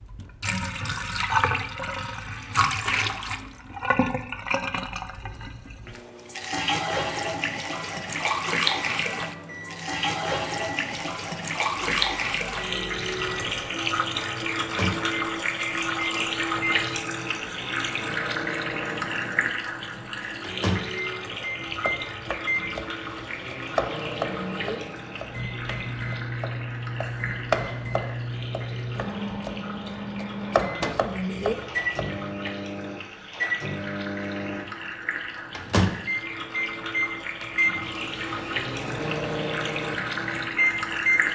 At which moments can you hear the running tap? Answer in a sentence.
The running tap can be heard from 0.0 to 41.2 s.